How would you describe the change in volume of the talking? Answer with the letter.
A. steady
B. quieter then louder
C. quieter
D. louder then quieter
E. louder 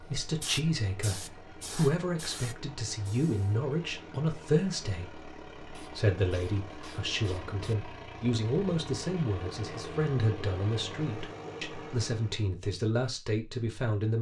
A.